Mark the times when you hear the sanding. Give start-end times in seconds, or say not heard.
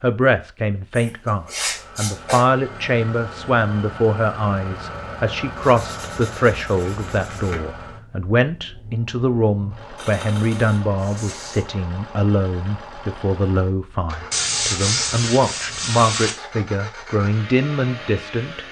0.9-2.5, 5.5-7.6, 9.9-11.7, 14.3-16.4.